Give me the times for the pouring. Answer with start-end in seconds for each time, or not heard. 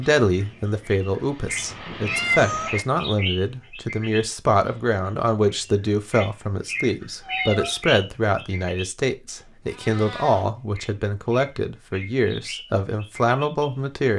not heard.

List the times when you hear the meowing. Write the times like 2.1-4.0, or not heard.
2.0-2.7, 7.2-7.8, 9.7-10.4.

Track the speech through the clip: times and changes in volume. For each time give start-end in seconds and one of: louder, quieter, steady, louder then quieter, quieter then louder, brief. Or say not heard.
0.0-14.1 steady.